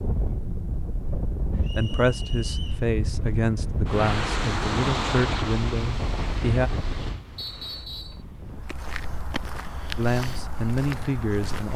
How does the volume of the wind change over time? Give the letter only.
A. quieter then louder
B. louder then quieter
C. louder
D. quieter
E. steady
B.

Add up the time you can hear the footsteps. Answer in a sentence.
You can hear the footsteps for 3 seconds altogether.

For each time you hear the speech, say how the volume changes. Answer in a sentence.
You can hear the speech from 1.8 to 6.7 s, at a steady volume; and briefly from 9.9 to 11.7 s.